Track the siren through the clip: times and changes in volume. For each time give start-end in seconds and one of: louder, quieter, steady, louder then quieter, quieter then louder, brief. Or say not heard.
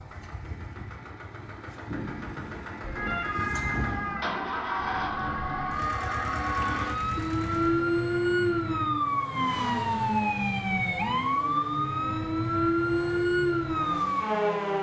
2.8-14.7 louder.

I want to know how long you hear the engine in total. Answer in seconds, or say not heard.
15 s.